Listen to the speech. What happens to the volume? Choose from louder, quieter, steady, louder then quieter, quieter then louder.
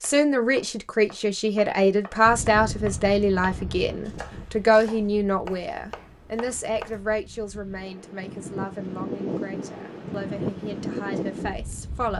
quieter.